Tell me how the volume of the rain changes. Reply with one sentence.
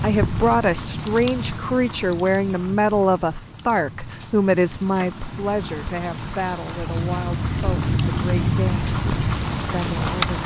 The loudness of the rain goes down, then up.